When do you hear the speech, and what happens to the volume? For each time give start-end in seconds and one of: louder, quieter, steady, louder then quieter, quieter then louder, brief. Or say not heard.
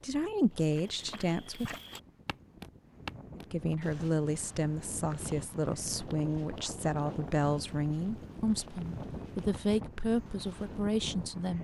0.0-1.8 brief
3.4-11.5 steady.